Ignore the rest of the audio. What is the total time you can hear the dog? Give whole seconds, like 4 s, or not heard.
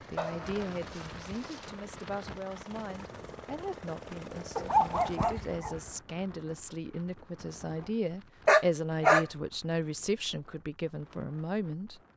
4 s.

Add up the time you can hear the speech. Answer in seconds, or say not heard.
12 s.